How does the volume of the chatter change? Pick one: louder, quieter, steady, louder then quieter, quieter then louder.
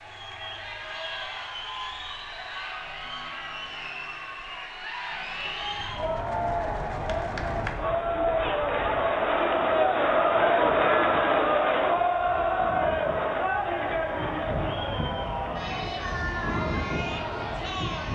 louder then quieter.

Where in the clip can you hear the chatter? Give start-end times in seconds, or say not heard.
0.0-18.1.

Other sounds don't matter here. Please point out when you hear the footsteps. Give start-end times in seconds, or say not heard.
not heard.